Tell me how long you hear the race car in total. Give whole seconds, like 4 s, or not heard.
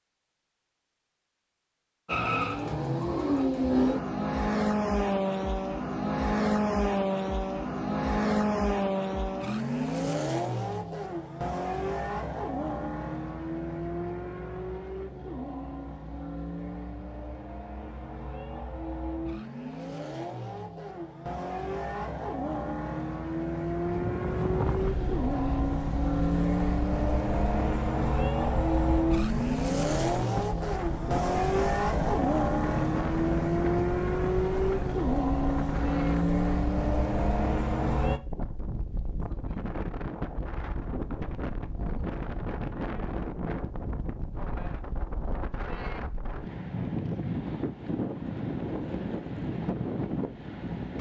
36 s.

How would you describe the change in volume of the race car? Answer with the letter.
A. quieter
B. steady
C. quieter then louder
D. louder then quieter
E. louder
C.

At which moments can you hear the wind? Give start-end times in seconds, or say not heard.
23.9-50.9.